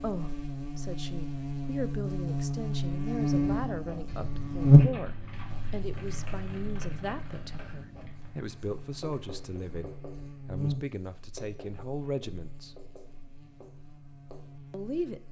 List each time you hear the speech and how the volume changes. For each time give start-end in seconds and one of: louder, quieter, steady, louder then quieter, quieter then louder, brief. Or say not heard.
0.0-12.8 steady
14.7-15.2 brief.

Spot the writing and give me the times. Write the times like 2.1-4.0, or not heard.
3.5-14.8.